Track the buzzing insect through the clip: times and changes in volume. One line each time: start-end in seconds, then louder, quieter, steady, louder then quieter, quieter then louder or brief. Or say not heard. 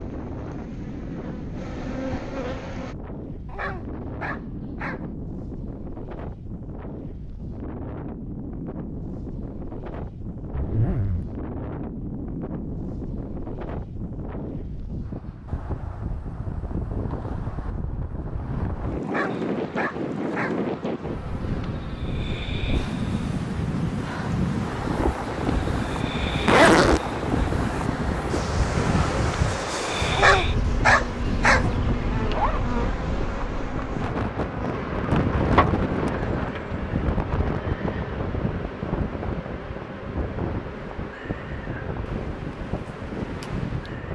0.0-3.0 brief
19.2-44.1 louder then quieter.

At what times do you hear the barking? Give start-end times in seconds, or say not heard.
3.5-5.0, 19.0-20.6, 30.1-31.7.